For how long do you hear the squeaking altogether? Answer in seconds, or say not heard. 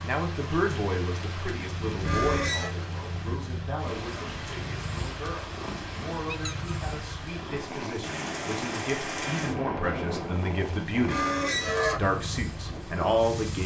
2 s.